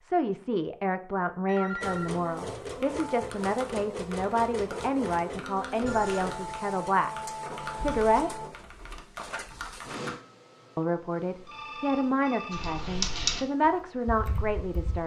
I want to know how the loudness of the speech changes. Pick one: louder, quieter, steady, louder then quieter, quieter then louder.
steady.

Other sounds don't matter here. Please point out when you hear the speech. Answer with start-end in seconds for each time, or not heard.
0.0-8.3, 10.8-15.0.